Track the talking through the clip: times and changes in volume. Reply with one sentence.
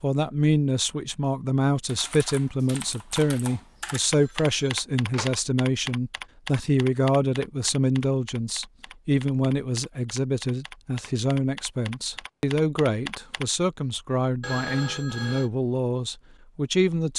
You can hear the talking from 0.0 to 17.1 s, at a steady volume.